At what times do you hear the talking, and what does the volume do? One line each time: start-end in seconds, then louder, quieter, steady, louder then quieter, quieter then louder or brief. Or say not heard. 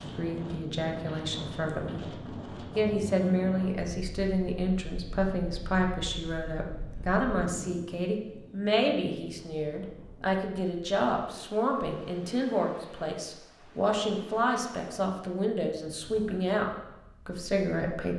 0.0-2.0 brief
2.8-18.1 steady.